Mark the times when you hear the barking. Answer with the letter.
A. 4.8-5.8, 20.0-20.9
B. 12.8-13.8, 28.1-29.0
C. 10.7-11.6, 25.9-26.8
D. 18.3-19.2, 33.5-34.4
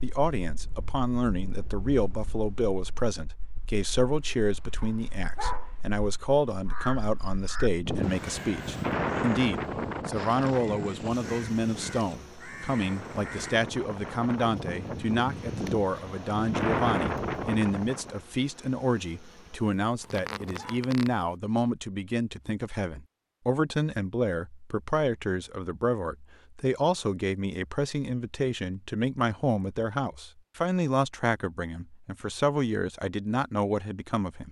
A.